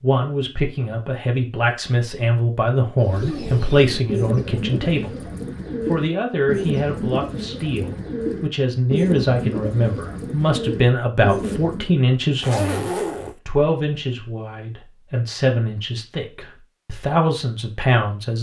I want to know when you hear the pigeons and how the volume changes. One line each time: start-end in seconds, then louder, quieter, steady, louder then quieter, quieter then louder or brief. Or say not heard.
3.0-11.9 steady.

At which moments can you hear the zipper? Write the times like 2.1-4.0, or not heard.
12.4-13.3.